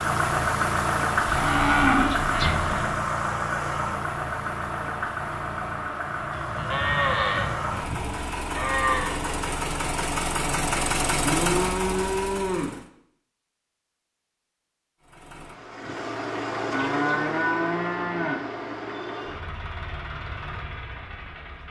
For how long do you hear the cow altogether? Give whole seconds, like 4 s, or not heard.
8 s.